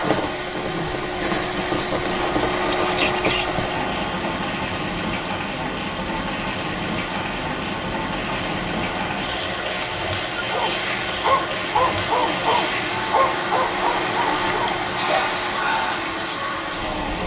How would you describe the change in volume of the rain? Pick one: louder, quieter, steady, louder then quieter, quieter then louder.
steady.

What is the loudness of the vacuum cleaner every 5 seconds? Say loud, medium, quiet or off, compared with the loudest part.
loud, medium, loud, loud.